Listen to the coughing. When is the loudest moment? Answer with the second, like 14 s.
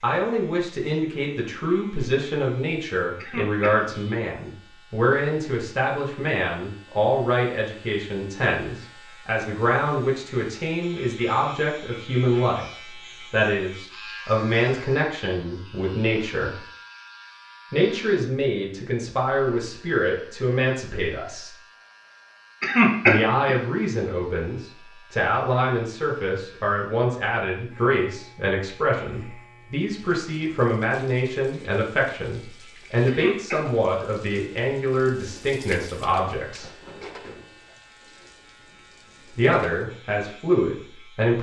23 s.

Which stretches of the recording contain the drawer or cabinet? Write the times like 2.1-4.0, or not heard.
not heard.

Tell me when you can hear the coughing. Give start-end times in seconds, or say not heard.
3.1-3.9, 22.6-23.6, 33.0-33.8.